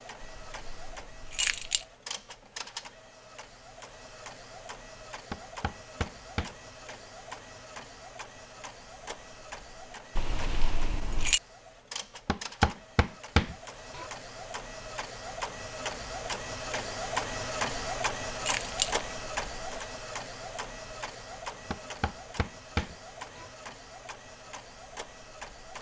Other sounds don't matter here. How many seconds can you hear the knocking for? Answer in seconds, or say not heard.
5 s.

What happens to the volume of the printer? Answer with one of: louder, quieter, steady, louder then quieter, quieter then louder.
louder then quieter.